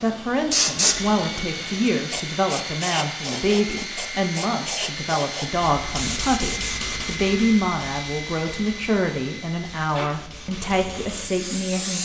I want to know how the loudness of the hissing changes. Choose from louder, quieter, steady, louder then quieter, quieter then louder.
quieter.